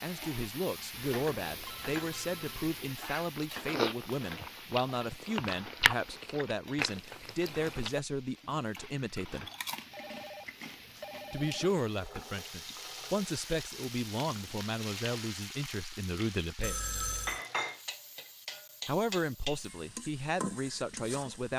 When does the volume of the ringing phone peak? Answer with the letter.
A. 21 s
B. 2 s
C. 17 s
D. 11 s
C.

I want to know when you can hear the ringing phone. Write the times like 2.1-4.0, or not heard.
0.9-2.8, 9.9-11.7, 16.6-17.4.